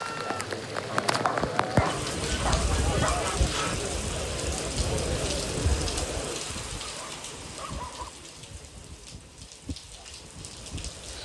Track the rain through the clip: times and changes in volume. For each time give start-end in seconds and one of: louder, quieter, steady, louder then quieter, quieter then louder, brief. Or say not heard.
0.0-11.2 quieter.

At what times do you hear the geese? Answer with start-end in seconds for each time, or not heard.
1.9-3.9.